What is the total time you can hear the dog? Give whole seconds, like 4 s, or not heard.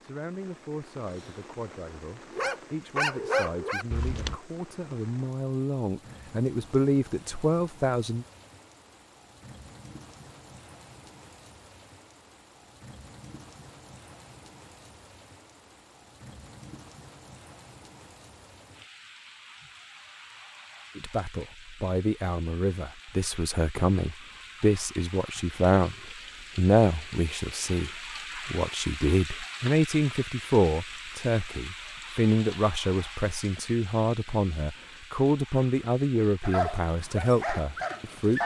4 s.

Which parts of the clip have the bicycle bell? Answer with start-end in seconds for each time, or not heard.
not heard.